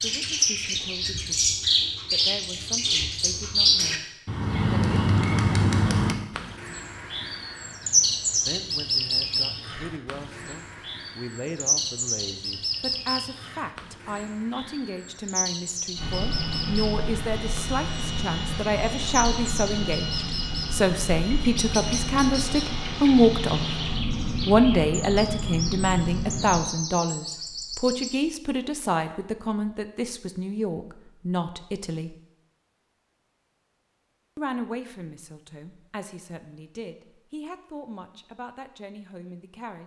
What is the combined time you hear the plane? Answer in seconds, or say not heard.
11 s.